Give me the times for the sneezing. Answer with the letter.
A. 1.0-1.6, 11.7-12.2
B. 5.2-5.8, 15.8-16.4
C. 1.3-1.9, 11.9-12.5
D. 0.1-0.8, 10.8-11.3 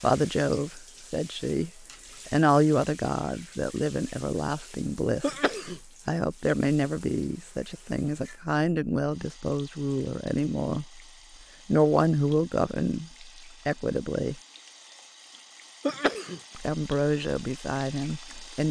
B.